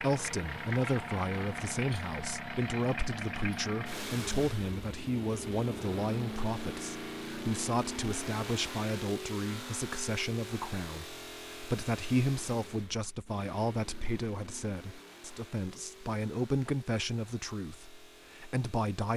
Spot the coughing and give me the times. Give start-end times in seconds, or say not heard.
not heard.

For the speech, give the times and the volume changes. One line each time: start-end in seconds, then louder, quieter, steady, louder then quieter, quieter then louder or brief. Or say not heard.
0.0-19.1 steady.